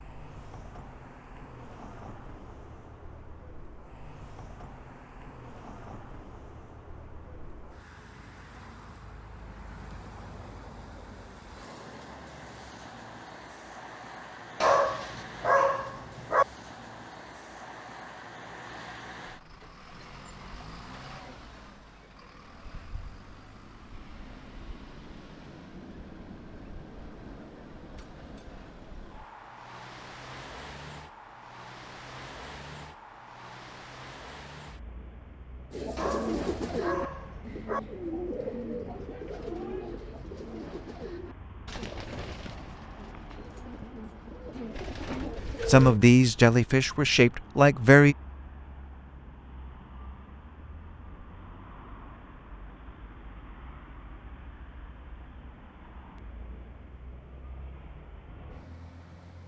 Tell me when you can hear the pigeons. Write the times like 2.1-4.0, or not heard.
35.7-46.0.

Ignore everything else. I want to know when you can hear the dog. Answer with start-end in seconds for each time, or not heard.
14.6-16.4, 36.0-37.8.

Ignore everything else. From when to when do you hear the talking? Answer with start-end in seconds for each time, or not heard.
45.6-48.1.